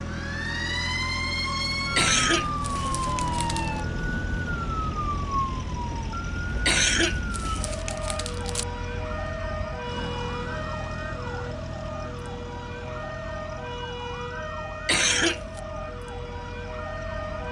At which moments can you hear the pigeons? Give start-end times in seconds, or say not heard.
not heard.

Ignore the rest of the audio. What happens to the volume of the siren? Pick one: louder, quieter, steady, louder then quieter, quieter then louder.
quieter.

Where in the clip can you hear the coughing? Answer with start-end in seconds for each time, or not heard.
1.9-3.8, 6.7-8.7, 14.8-15.6.